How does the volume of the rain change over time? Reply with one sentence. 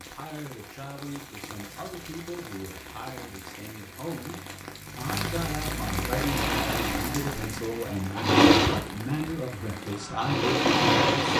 The loudness of the rain goes up, then down.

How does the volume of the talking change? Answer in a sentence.
The volume of the talking goes up.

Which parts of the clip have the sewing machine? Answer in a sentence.
You can hear the sewing machine from 6.1 to 11.3 s.